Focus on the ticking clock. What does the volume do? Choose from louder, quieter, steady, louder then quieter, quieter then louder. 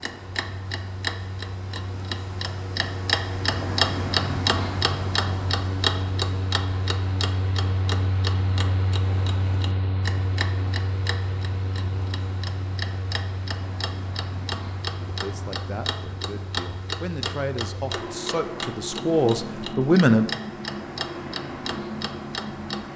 quieter.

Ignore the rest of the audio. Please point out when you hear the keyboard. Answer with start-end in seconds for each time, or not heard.
not heard.